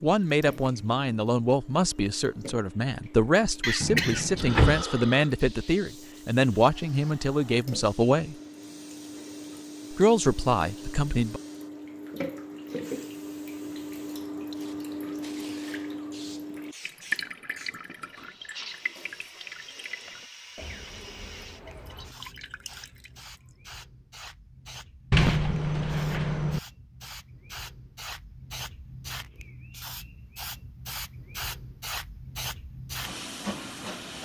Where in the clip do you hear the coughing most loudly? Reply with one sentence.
The loudest moment of the coughing is at 4 seconds.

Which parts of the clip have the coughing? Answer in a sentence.
The coughing can be heard from 3.6 to 5.3 s.